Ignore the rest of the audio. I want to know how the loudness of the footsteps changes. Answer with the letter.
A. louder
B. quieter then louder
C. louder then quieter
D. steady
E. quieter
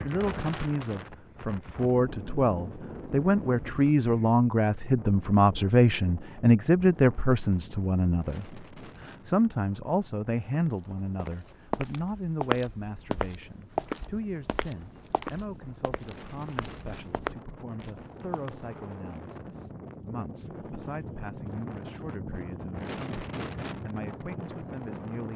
B.